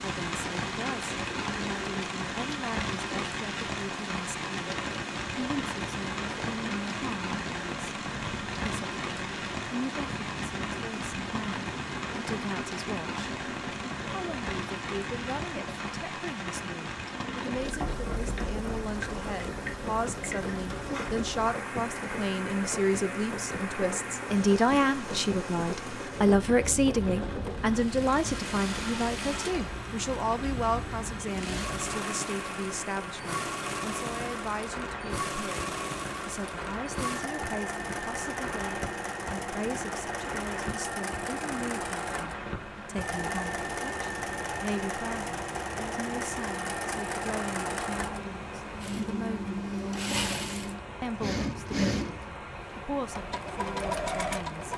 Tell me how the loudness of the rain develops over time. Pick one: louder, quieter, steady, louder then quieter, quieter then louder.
quieter.